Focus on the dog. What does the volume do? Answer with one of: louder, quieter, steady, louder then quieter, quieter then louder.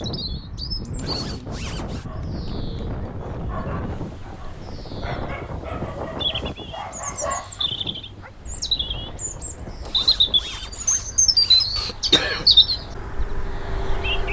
louder.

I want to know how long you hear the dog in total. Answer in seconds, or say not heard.
6 s.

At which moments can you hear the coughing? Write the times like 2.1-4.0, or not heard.
11.8-12.5.